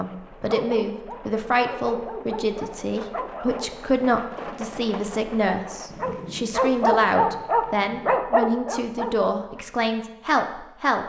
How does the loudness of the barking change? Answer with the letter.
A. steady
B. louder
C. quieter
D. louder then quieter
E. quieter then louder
B.